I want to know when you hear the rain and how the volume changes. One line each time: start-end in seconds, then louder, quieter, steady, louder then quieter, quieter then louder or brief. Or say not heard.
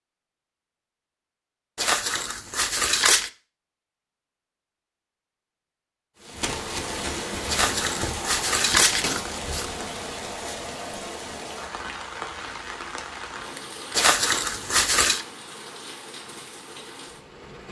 6.2-17.6 quieter.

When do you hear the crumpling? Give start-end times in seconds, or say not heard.
1.8-3.3, 7.5-9.7, 13.9-15.2.